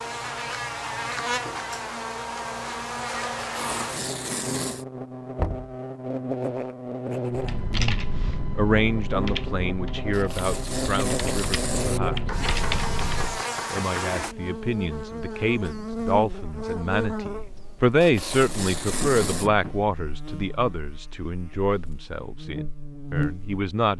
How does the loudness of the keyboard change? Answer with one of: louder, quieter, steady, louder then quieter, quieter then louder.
quieter then louder.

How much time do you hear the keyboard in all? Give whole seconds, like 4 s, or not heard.
6 s.